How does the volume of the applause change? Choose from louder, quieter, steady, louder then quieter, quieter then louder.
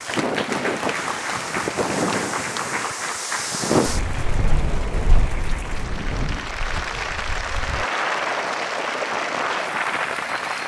quieter then louder.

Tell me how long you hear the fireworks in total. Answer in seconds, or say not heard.
not heard.